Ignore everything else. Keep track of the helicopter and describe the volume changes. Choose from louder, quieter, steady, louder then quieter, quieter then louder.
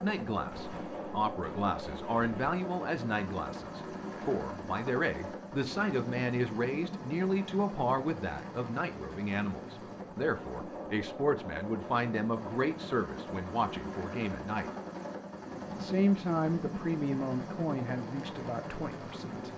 steady.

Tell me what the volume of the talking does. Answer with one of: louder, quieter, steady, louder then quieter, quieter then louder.
steady.